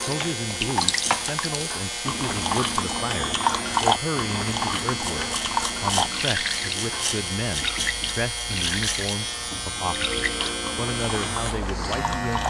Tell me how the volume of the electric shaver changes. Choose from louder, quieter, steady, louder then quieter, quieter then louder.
steady.